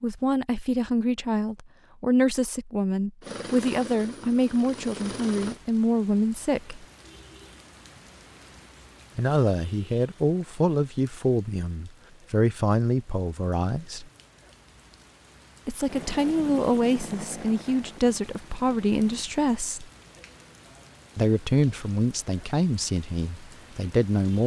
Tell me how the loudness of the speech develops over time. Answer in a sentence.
The volume of the speech stays about the same.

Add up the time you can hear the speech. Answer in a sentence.
You can hear the speech for 19 seconds altogether.